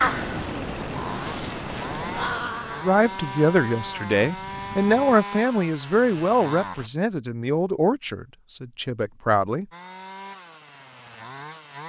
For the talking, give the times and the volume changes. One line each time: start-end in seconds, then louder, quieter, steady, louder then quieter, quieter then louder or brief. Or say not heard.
2.8-9.7 quieter.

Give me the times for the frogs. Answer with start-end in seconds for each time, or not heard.
not heard.